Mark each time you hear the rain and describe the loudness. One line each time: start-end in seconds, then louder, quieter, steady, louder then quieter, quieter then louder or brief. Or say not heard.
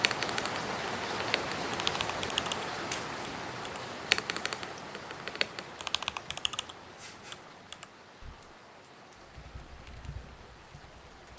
0.0-11.3 quieter.